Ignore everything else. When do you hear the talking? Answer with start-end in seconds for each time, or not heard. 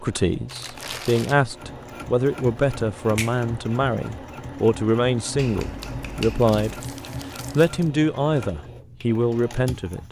0.0-6.8, 7.5-10.0.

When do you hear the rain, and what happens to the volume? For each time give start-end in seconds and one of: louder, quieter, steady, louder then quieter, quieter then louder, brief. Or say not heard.
not heard.